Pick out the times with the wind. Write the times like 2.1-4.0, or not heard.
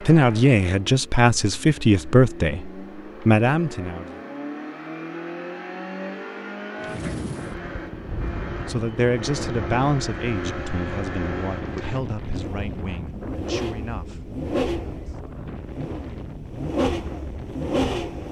6.8-18.2.